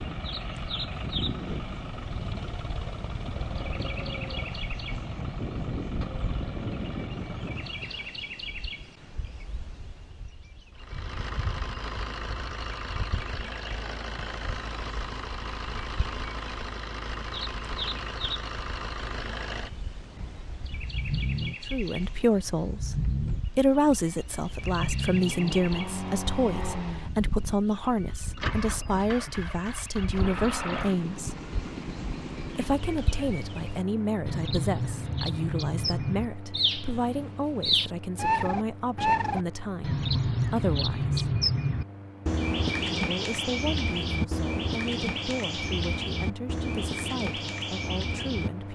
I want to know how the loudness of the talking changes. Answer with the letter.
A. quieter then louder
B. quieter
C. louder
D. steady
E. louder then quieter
B.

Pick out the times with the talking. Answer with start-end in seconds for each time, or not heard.
21.7-31.4, 32.5-41.4, 43.0-48.6.